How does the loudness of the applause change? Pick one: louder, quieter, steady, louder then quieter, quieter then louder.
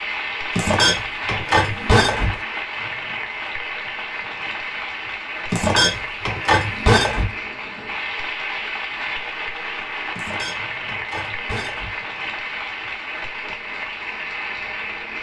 steady.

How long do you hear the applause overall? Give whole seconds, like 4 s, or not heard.
15 s.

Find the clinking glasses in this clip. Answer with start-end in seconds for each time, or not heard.
0.6-2.4, 5.5-7.3, 10.2-12.0.